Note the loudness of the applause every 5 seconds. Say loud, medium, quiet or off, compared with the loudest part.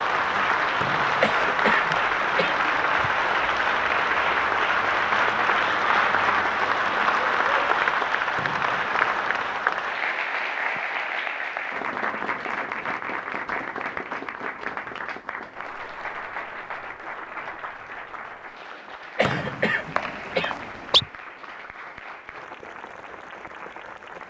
loud, loud, medium, quiet, quiet.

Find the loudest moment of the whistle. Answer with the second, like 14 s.
21 s.